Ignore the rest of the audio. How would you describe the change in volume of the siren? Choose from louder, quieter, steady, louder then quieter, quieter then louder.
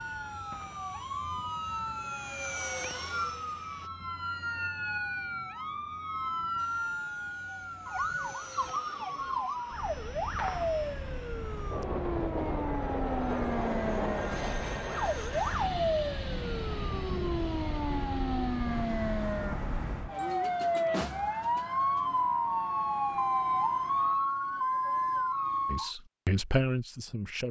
louder.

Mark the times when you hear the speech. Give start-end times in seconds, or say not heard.
25.7-27.4.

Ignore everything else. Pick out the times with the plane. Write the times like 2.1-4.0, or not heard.
0.0-3.9, 6.5-24.1.